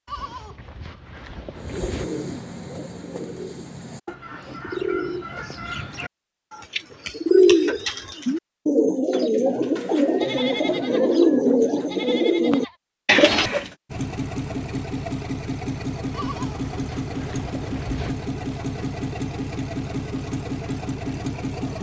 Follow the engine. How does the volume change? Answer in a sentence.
The volume of the engine stays about the same.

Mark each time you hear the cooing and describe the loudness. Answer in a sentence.
The cooing can be heard from 1.6 to 13.7 s, getting louder.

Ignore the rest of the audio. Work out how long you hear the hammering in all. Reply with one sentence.
The hammering can't be heard in this clip.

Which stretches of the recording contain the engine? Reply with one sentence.
You can hear the engine from 13.9 to 21.7 s.